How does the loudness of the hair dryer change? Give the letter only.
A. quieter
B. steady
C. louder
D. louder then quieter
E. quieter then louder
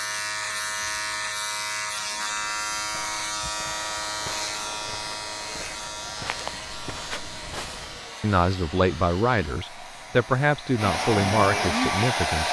C.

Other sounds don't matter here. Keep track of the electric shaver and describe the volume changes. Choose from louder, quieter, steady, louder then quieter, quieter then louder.
quieter.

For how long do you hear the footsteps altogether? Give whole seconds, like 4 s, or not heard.
6 s.